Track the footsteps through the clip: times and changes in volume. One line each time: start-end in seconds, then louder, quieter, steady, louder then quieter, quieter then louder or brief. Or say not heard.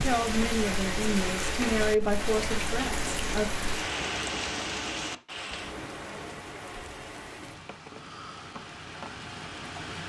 not heard.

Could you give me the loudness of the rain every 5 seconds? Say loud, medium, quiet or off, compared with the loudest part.
loud, medium.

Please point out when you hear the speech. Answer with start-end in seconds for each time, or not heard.
0.0-3.5.